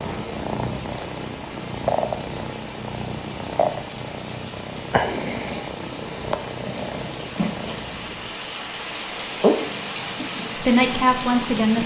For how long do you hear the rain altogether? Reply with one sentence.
You can hear the rain for 12 seconds altogether.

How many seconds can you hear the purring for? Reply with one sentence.
The purring can be heard for 11 seconds in total.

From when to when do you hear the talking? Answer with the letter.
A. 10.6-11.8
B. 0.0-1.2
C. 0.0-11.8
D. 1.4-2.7
A.